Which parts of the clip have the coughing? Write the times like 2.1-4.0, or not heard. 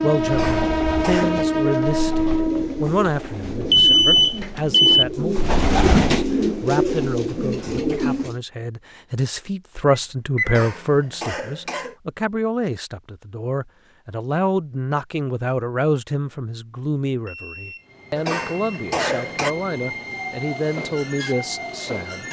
0.2-1.4, 10.4-11.9, 18.1-19.6.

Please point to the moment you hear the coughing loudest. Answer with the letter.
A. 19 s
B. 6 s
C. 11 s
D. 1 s
A.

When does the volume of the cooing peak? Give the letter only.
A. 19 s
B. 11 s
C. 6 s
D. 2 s
C.